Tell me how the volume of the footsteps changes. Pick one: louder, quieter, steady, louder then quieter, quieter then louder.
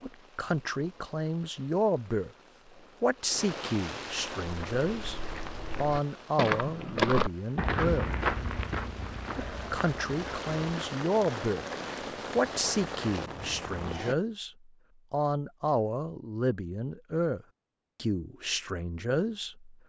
louder then quieter.